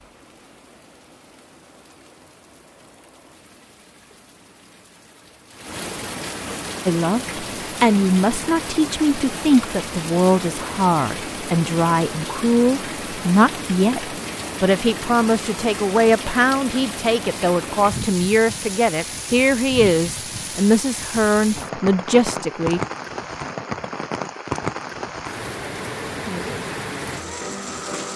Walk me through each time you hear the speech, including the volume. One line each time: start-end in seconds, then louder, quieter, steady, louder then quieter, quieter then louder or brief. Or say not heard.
6.8-22.8 steady.